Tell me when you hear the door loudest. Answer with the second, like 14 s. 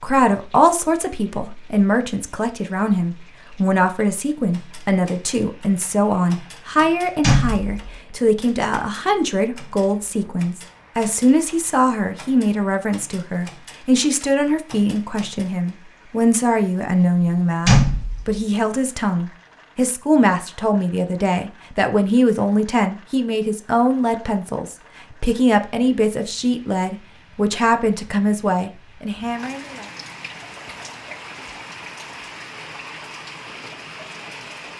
18 s.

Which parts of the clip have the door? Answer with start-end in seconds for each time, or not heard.
7.2-8.0, 17.6-18.4.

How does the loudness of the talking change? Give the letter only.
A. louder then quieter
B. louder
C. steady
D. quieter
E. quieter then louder
C.